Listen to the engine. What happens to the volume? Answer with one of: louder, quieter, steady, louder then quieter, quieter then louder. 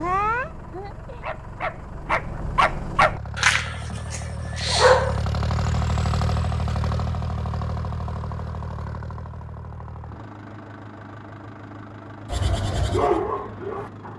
louder then quieter.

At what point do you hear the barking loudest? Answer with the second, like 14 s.
5 s.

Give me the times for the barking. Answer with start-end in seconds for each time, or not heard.
0.0-5.2, 12.3-14.1.